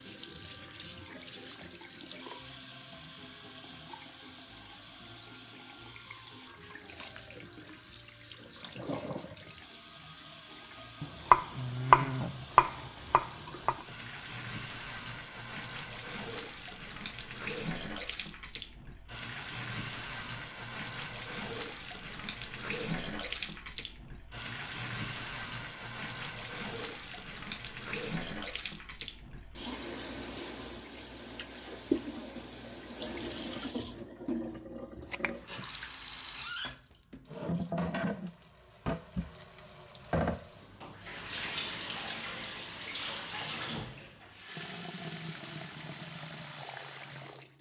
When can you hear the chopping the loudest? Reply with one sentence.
The loudest moment of the chopping is at 12 seconds.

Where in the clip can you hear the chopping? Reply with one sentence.
You can hear the chopping from 11.0 to 13.8 s.